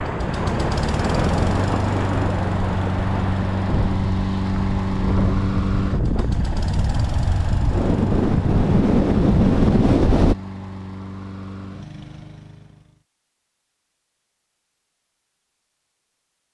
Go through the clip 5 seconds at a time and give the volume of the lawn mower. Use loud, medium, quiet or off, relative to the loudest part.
loud, loud, medium, off.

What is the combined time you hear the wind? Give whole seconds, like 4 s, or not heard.
10 s.